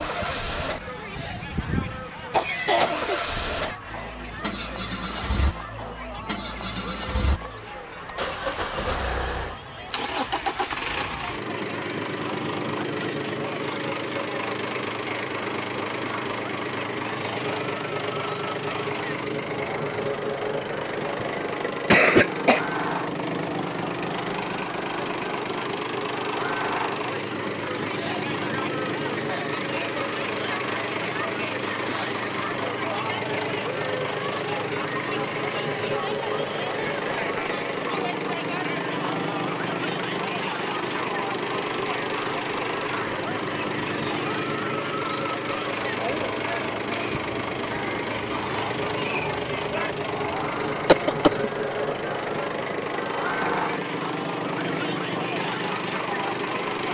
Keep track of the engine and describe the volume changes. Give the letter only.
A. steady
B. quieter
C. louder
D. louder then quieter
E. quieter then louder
A.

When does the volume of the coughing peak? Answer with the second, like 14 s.
22 s.